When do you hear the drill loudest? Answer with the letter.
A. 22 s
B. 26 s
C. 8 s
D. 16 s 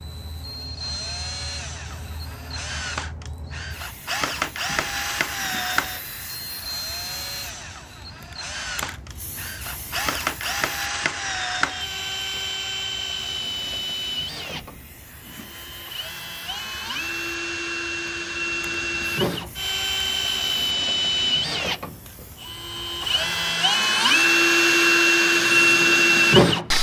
B.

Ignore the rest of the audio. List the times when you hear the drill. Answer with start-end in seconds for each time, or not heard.
0.0-26.7.